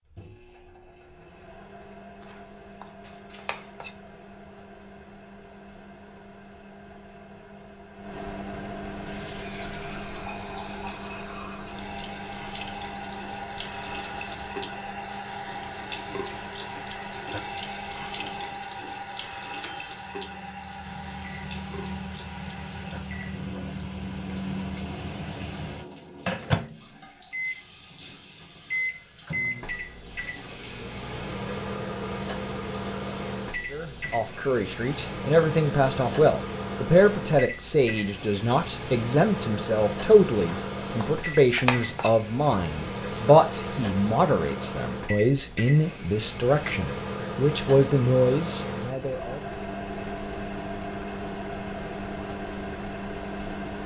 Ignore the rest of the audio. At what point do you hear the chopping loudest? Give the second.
42 s.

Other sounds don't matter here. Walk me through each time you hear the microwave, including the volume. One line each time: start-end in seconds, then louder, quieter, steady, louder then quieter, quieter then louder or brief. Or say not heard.
0.0-53.8 louder.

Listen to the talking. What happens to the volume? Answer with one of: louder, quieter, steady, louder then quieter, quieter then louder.
steady.